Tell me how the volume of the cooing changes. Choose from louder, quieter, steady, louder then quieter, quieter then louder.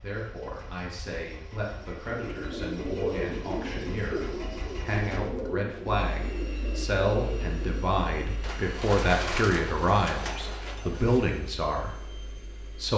quieter.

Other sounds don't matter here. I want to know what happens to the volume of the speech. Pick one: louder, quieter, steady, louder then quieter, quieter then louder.
louder.